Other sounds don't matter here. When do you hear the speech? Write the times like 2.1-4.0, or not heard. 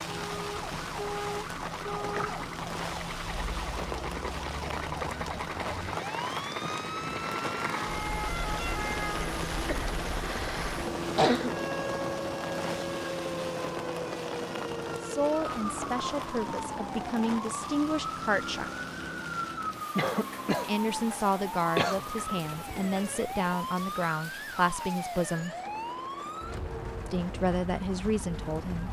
15.0-18.7, 20.6-25.6, 27.1-28.8.